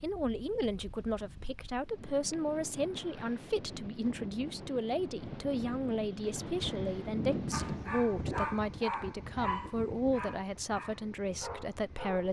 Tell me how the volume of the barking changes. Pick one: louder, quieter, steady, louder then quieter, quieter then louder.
quieter.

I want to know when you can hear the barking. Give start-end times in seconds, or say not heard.
7.5-12.2.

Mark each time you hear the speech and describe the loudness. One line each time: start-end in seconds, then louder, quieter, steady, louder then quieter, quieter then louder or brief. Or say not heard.
0.0-12.2 steady.